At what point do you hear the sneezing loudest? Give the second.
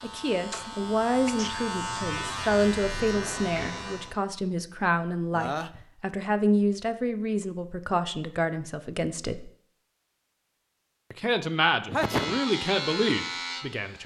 12 s.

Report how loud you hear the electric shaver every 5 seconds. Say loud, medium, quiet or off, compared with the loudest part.
loud, off, loud.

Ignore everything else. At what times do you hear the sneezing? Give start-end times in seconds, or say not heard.
1.2-1.7, 5.3-5.8, 11.8-12.4.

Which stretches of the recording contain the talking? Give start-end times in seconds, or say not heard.
0.0-9.5, 11.1-14.0.